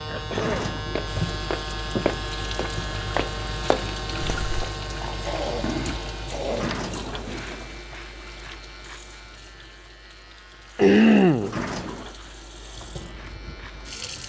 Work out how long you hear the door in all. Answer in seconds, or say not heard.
3 s.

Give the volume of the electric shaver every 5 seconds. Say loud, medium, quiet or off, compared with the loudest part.
loud, medium, quiet.